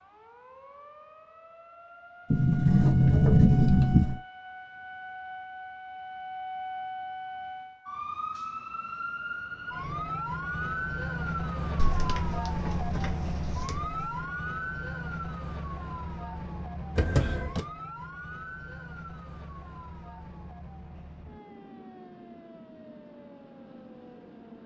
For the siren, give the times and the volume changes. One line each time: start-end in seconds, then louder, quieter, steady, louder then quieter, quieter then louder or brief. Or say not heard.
0.0-24.6 louder then quieter.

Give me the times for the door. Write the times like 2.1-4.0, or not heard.
2.3-4.2, 11.8-14.2, 16.9-17.6.